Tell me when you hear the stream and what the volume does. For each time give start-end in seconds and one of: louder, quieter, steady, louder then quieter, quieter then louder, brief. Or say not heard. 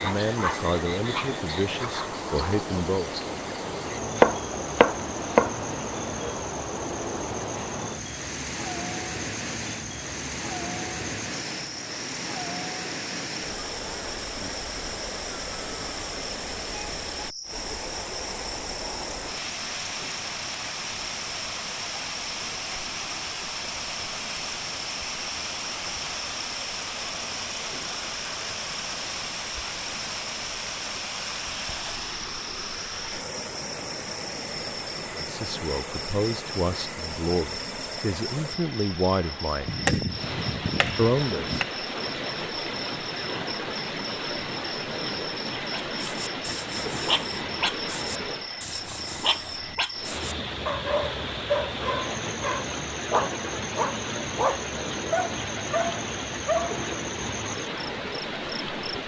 0.0-59.0 steady.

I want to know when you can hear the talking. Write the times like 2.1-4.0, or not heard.
0.0-3.1, 35.1-39.9, 41.0-41.6.